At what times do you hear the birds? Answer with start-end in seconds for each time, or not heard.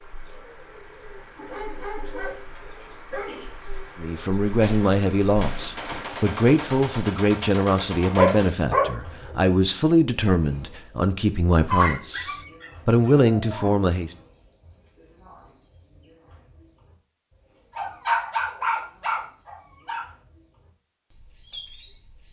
0.0-22.2.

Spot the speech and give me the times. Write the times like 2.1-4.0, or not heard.
4.0-14.1.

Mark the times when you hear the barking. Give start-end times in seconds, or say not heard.
1.4-3.4, 8.2-9.3, 11.7-13.7, 17.8-20.1.